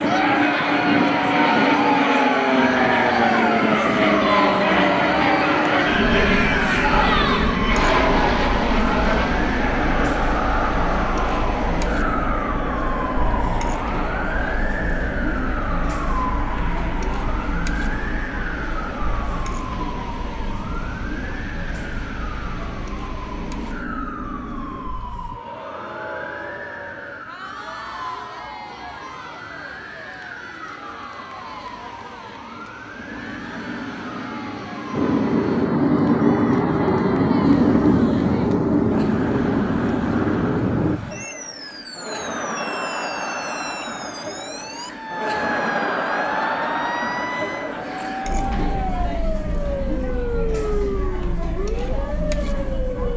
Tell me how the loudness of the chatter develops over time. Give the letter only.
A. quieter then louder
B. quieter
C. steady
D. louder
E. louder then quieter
A.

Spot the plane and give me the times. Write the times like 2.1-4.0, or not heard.
0.0-24.9, 33.0-41.0.